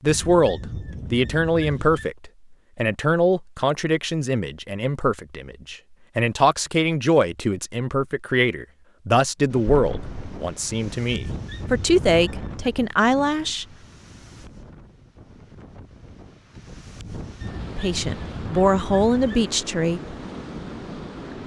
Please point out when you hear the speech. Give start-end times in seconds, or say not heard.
0.0-13.7, 17.8-20.0.